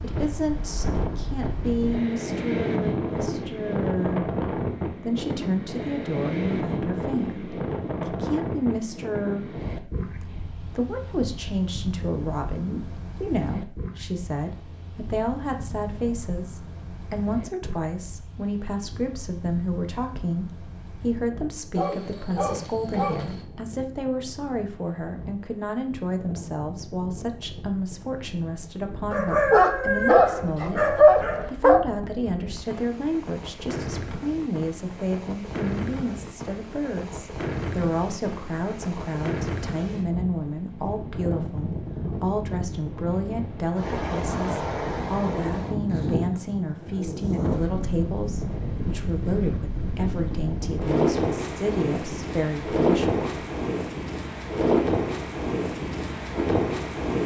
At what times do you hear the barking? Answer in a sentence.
The barking can be heard from 21.8 to 23.4 s and from 29.1 to 31.8 s.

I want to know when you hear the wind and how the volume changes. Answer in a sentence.
The wind can be heard from 0.0 to 57.2 s, getting quieter then louder.